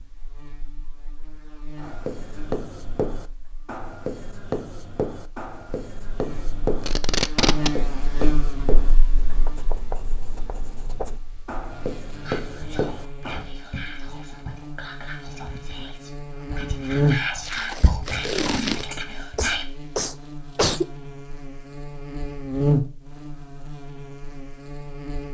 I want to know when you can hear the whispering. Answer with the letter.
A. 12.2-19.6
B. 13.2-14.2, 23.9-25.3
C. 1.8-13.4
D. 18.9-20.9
A.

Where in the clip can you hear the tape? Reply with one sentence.
You can hear the tape from 6.8 to 7.7 s and from 17.4 to 18.9 s.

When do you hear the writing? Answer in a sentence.
You can hear the writing from 1.8 to 13.4 s.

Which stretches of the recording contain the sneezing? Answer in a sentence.
The sneezing can be heard from 18.9 to 20.9 s.